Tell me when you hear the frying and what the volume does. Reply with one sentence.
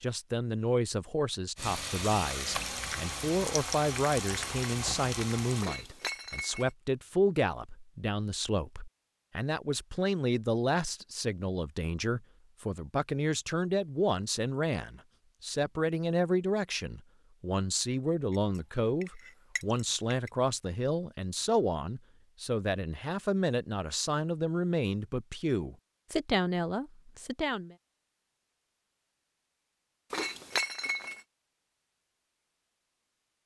The frying can be heard from 1.6 to 5.7 s, at a steady volume.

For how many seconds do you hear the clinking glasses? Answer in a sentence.
The clinking glasses can be heard for 4 seconds in total.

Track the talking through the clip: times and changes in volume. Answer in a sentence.
You can hear the talking from 0.0 to 27.8 s, at a steady volume.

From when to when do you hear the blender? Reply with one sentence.
The blender can't be heard in this clip.